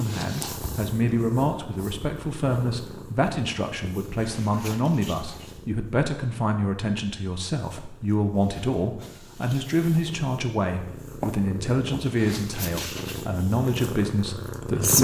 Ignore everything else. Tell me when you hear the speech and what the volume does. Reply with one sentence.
The speech can be heard from 0.0 to 14.9 s, at a steady volume.